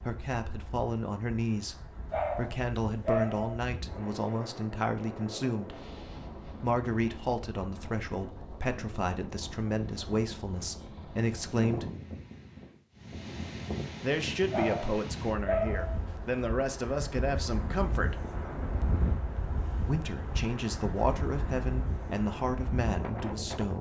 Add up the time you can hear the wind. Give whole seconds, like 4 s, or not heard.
24 s.